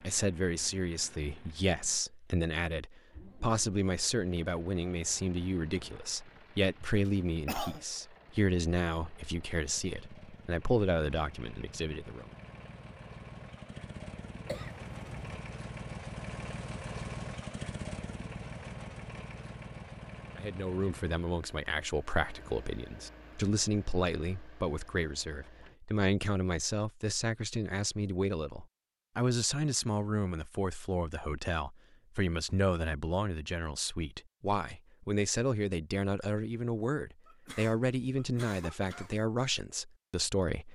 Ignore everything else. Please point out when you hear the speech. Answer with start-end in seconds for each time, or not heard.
0.0-12.2, 20.4-40.7.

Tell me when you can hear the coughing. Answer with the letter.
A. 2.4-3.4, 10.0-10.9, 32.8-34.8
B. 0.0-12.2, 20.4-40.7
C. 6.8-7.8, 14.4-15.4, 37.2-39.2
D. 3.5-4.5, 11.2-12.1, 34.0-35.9
C.